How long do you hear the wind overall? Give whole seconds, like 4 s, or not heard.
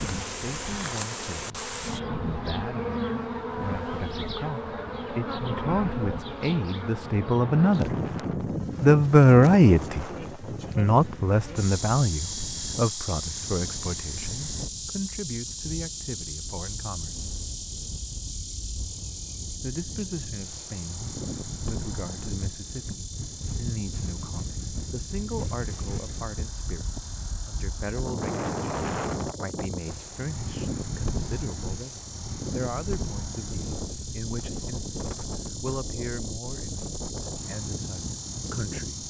39 s.